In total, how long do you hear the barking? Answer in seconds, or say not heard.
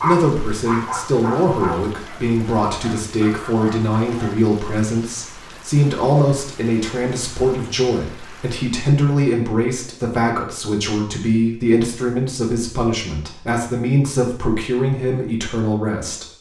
4 s.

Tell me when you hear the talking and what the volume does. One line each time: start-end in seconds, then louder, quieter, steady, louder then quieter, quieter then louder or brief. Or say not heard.
0.0-16.3 steady.